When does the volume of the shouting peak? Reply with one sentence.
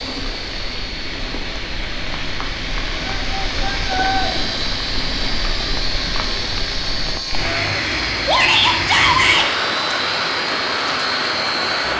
The loudest moment of the shouting is at 9 seconds.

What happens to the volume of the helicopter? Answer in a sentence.
The volume of the helicopter goes up.